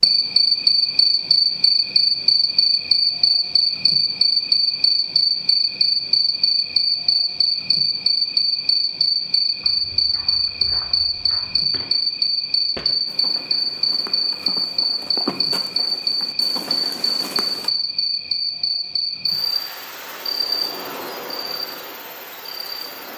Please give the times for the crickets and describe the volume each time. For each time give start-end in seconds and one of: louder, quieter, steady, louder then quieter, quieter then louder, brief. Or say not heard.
0.0-23.1 quieter.